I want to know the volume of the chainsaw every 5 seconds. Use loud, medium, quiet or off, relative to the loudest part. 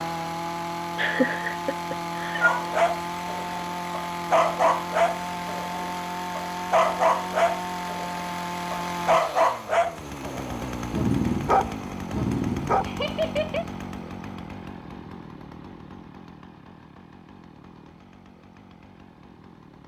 loud, loud, loud, quiet.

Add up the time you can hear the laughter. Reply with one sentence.
The laughter can be heard for 2 seconds in total.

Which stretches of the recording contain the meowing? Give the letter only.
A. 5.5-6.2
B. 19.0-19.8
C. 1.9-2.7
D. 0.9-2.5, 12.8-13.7
C.